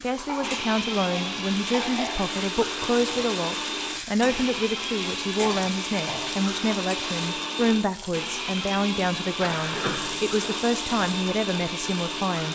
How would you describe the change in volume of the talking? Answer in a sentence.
The loudness of the talking stays about the same.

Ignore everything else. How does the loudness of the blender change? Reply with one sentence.
The volume of the blender stays about the same.